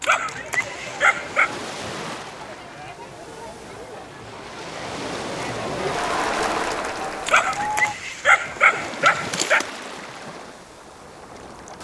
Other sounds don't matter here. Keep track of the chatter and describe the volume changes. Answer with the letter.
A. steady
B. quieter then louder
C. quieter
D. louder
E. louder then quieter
D.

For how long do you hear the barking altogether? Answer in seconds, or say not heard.
4 s.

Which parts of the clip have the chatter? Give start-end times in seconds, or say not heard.
0.0-8.0.